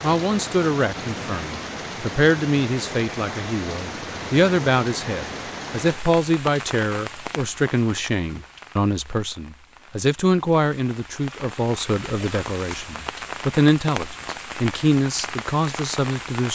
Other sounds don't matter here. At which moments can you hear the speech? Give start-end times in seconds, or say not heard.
0.0-16.4.